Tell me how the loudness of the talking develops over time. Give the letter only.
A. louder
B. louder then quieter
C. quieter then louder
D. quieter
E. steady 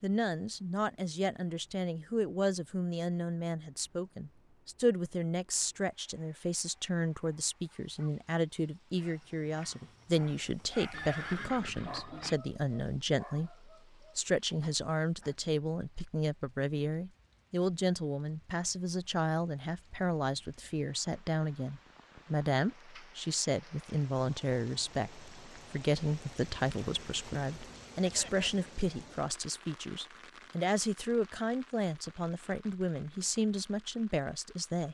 E.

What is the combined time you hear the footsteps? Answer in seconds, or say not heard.
not heard.